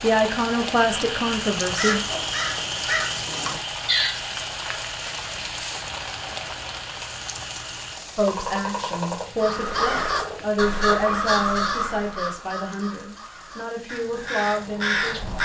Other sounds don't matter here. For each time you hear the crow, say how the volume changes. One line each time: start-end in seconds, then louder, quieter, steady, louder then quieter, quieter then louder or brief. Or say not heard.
1.6-4.2 brief
9.4-15.4 quieter then louder.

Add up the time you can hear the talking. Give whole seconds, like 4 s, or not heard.
9 s.